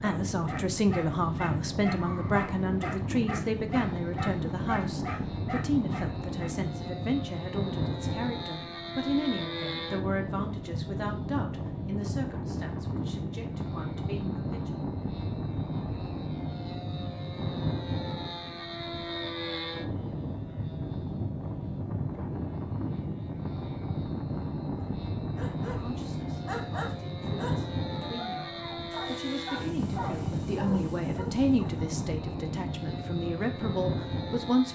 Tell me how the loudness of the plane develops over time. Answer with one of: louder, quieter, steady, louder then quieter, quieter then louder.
steady.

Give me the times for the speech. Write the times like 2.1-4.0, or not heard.
0.0-14.8, 25.6-34.6.